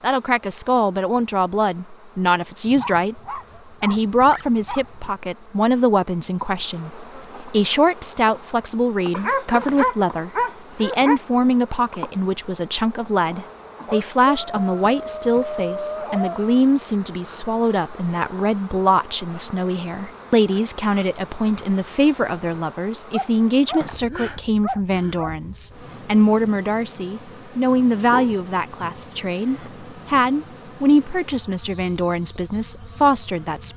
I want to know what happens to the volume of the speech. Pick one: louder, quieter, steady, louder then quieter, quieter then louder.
steady.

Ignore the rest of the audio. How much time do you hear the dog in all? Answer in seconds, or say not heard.
11 s.